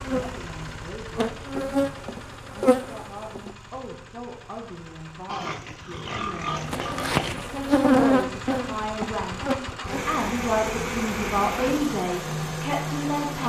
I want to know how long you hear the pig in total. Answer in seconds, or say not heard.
2 s.